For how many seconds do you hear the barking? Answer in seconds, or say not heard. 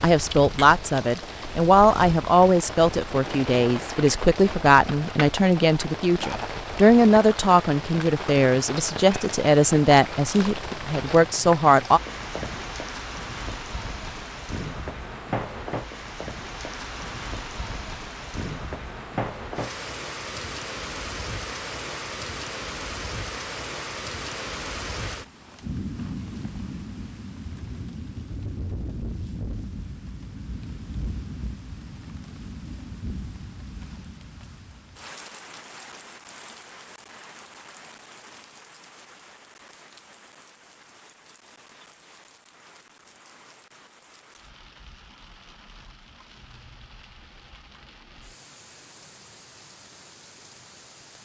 not heard.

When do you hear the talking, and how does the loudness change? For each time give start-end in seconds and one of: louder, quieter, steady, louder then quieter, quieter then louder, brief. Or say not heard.
0.0-12.0 steady.